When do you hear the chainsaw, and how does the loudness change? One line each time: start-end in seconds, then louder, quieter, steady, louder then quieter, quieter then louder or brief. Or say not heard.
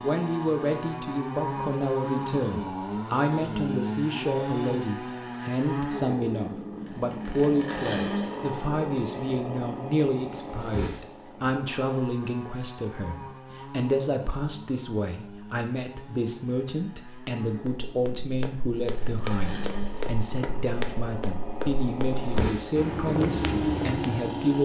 0.0-24.6 quieter then louder.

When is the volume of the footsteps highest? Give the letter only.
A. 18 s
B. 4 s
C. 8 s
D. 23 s
D.